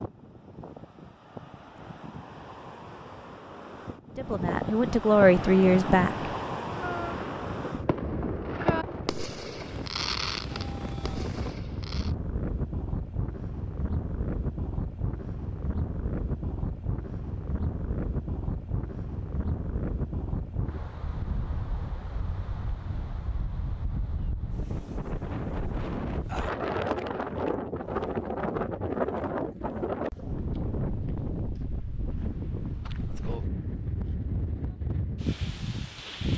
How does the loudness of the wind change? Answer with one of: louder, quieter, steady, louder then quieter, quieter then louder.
steady.